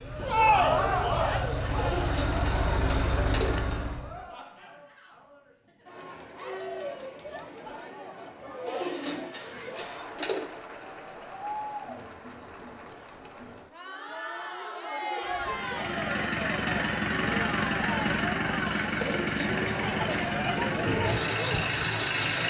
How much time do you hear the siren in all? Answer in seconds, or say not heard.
not heard.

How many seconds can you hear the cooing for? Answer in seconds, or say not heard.
5 s.